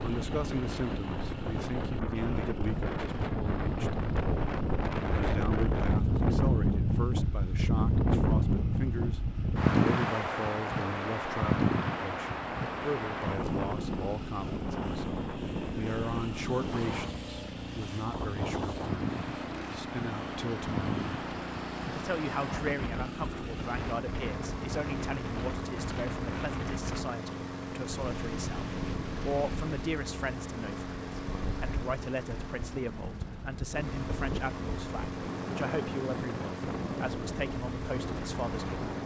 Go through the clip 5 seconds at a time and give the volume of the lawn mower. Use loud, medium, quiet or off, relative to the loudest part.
medium, quiet, medium, loud, loud, loud, loud, loud.